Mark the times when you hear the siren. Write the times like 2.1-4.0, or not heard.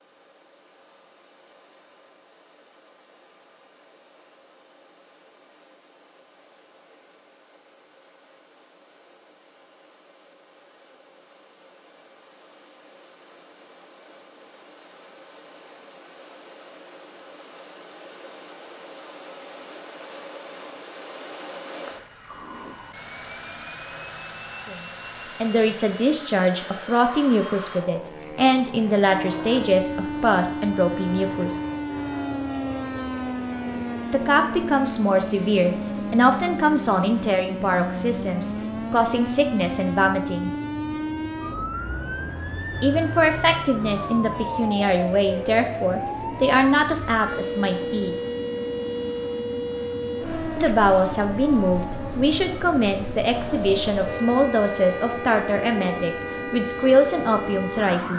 29.1-58.1.